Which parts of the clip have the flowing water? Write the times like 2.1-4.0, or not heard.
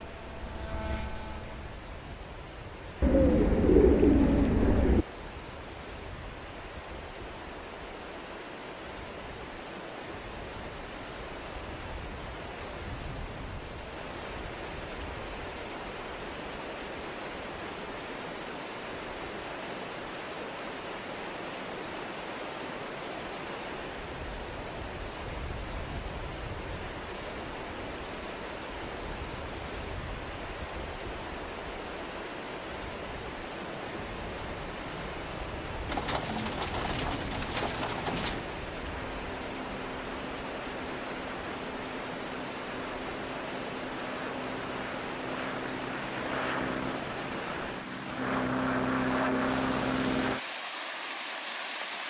0.0-52.0.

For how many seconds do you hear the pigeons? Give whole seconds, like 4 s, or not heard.
5 s.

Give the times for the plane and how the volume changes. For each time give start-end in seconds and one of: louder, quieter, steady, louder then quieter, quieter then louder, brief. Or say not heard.
0.0-1.7 brief
33.8-50.4 louder.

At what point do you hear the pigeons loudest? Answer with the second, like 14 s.
4 s.